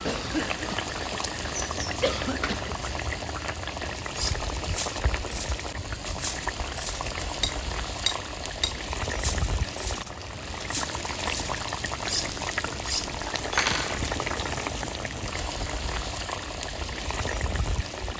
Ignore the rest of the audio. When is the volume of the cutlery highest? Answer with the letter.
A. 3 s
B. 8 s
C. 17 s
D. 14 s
D.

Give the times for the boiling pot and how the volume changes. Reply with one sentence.
You can hear the boiling pot from 0.0 to 18.1 s, at a steady volume.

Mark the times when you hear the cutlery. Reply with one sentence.
You can hear the cutlery from 4.2 to 14.0 s.